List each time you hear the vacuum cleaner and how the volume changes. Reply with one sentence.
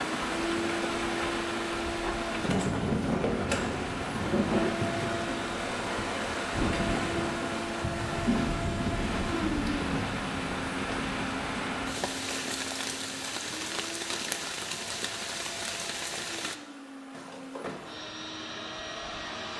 You can hear the vacuum cleaner from 0.0 to 19.5 s, getting quieter.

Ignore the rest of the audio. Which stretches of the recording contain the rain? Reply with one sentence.
You can hear the rain from 0.0 to 16.6 s.